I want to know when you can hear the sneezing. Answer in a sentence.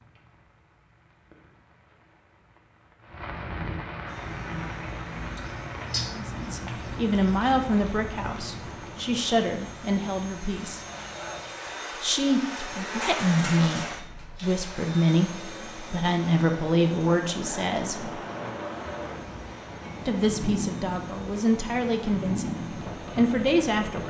You can hear the sneezing from 5.3 to 7.3 s.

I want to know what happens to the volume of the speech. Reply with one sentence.
The volume of the speech stays about the same.